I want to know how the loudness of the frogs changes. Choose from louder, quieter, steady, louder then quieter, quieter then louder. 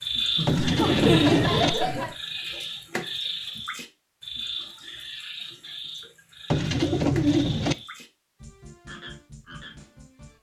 quieter.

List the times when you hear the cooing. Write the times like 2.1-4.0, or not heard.
0.5-1.7, 6.5-7.8.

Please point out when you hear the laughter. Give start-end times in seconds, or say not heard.
0.3-2.1.